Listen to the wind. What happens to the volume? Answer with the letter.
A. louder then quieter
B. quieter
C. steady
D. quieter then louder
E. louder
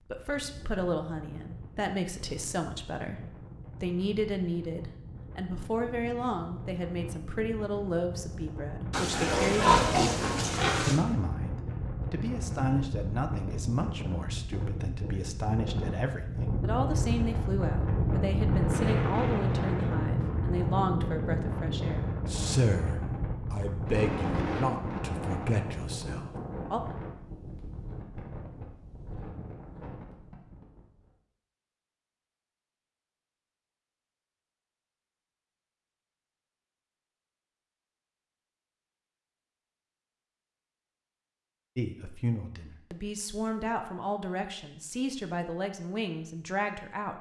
A.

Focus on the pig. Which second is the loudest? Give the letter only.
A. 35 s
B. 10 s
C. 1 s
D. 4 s
B.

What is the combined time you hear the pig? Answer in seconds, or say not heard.
2 s.